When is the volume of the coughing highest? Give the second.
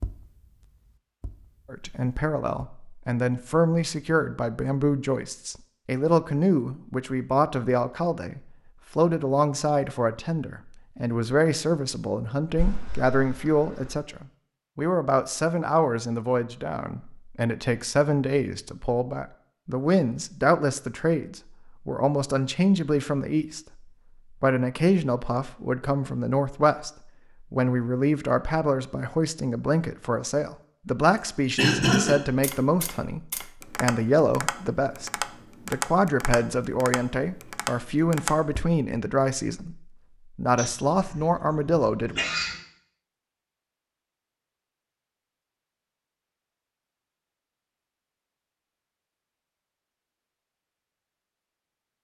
32 s.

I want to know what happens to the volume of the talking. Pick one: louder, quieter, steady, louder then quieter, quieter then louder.
steady.